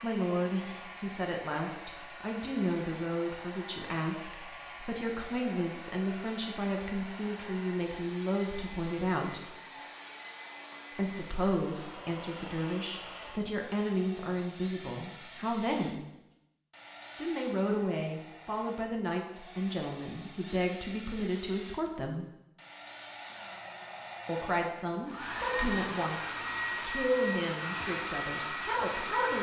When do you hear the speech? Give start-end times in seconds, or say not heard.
0.0-9.6, 10.9-16.0, 17.1-22.2, 24.2-29.3.